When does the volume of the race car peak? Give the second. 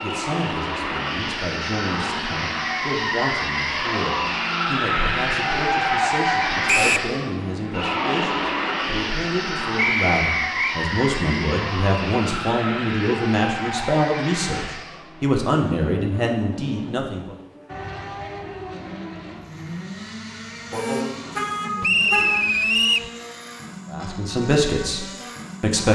6 s.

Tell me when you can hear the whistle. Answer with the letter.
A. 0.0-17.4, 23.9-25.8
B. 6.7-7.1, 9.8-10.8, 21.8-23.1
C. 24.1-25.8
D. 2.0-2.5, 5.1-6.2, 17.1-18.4
B.